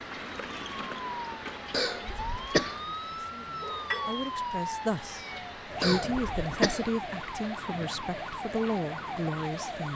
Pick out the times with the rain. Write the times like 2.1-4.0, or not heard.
0.0-9.9.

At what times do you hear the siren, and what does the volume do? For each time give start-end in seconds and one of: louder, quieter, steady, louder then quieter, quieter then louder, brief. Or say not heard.
0.0-9.9 steady.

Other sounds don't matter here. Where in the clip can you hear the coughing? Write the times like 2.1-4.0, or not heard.
1.7-2.8, 5.8-6.8.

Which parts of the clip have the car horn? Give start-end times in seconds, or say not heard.
not heard.